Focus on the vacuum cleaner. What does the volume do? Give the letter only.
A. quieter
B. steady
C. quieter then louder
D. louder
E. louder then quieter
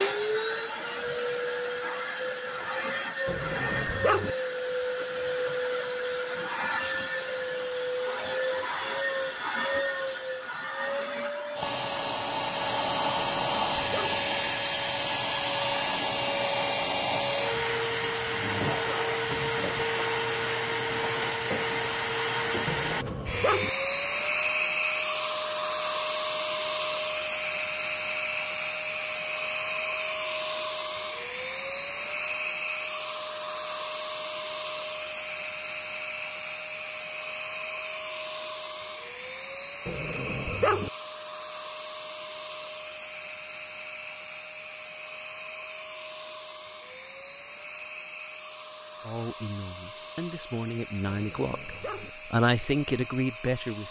A.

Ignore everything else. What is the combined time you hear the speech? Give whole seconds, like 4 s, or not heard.
5 s.